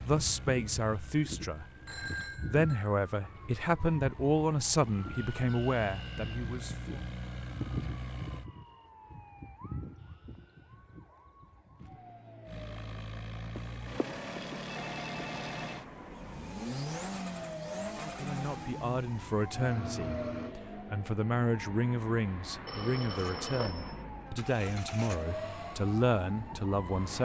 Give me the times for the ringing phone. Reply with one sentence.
You can hear the ringing phone from 1.9 to 2.6 s, from 13.6 to 15.8 s and from 22.6 to 23.9 s.